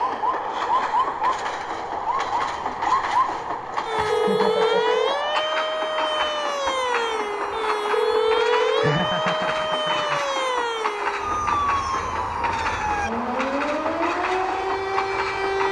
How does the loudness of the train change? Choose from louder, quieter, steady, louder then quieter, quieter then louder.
steady.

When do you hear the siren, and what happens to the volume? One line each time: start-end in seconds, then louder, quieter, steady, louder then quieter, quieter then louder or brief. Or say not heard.
0.0-15.6 steady.